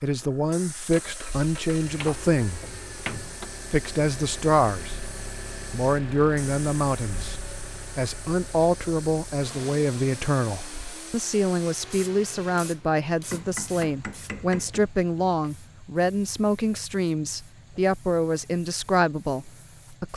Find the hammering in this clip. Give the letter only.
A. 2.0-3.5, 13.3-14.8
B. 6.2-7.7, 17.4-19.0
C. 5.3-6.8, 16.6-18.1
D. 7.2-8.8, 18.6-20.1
A.